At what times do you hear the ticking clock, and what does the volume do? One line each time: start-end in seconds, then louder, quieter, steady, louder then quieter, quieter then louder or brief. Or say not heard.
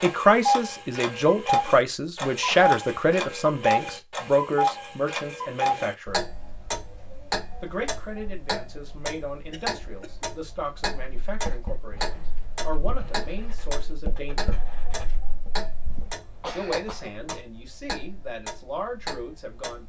0.0-19.8 quieter.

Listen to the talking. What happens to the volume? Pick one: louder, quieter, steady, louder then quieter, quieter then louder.
quieter.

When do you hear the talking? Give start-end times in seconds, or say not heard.
0.0-6.2, 7.6-14.6, 16.5-19.8.